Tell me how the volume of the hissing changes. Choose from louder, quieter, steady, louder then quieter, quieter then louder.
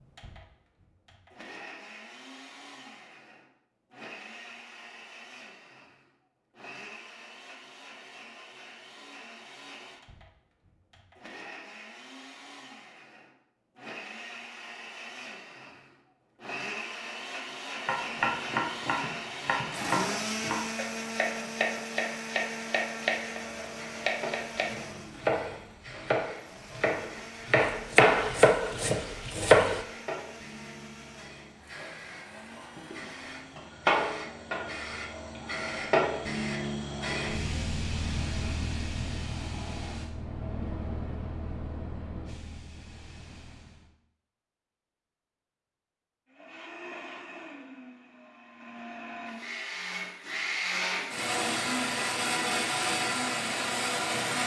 louder then quieter.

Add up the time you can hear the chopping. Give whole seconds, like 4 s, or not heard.
12 s.